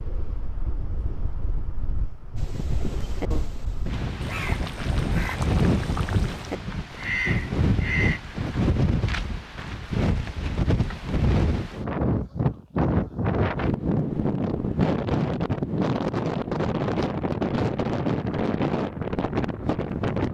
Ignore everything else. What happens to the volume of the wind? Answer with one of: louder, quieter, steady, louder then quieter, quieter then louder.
louder.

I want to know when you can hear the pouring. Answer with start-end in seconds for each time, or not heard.
4.2-6.5.